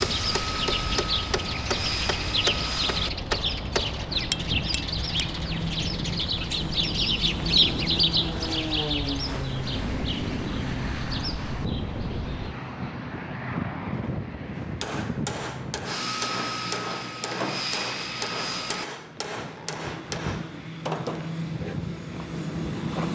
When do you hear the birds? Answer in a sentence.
The birds can be heard from 0.0 to 12.6 s.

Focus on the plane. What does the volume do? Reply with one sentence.
The loudness of the plane stays about the same.